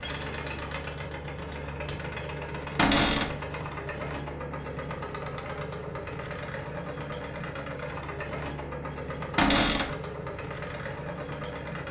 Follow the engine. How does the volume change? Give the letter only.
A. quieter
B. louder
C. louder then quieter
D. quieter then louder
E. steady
E.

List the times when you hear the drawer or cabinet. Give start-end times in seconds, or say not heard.
2.8-3.4, 9.3-9.9.